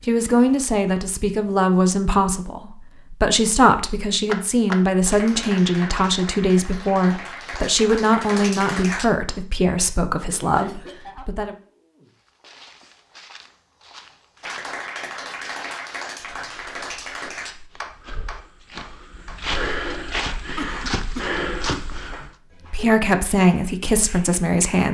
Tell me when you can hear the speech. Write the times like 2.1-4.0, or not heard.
0.0-11.6, 22.7-24.9.